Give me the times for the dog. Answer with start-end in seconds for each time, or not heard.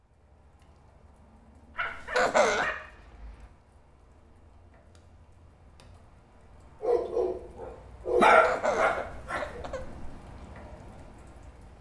1.8-3.5, 6.8-9.6.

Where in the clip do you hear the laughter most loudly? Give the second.
2 s.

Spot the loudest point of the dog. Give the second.
8 s.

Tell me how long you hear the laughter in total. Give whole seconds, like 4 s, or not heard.
3 s.